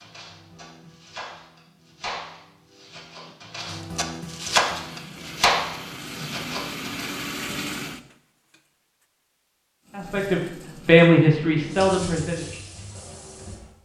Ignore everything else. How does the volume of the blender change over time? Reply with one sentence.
The volume of the blender goes up, then down.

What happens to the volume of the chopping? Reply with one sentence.
The volume of the chopping goes up, then down.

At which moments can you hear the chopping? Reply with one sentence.
You can hear the chopping from 0.0 to 7.2 s.